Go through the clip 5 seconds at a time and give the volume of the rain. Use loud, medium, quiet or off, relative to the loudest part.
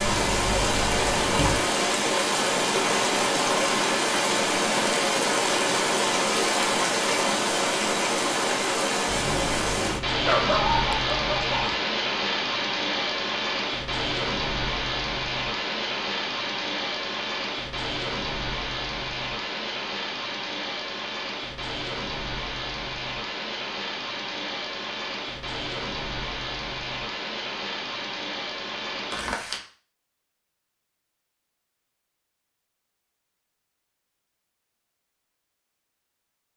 loud, loud, loud, medium, medium, medium, off, off.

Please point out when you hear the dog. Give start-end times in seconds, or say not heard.
10.2-11.8.